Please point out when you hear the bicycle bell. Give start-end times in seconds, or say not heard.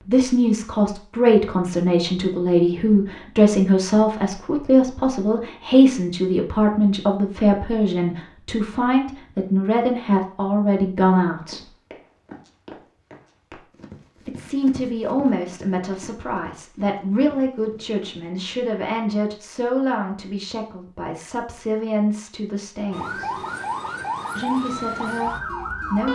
not heard.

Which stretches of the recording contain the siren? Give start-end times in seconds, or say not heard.
22.9-26.0.